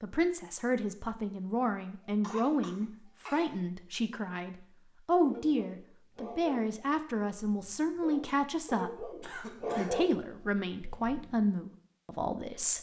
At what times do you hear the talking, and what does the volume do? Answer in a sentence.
You can hear the talking from 0.0 to 12.7 s, at a steady volume.